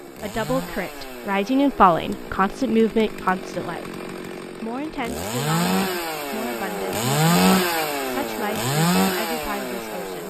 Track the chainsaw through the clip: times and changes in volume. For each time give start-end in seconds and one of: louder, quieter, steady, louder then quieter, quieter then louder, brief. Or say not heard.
0.0-10.2 louder.